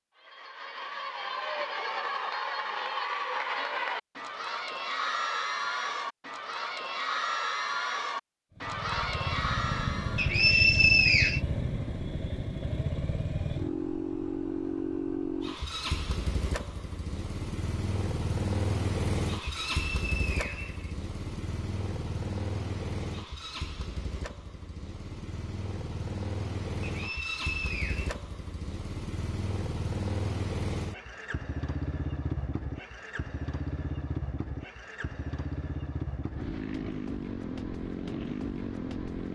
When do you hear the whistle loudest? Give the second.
11 s.